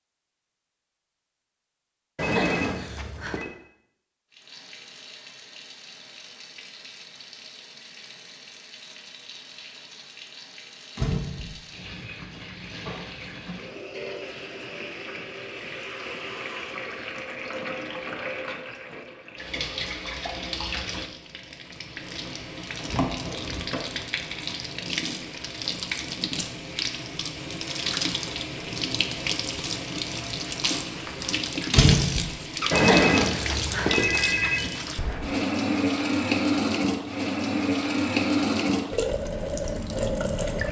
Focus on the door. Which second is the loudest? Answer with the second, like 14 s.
32 s.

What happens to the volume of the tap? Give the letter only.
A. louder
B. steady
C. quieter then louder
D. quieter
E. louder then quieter
A.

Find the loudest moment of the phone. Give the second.
33 s.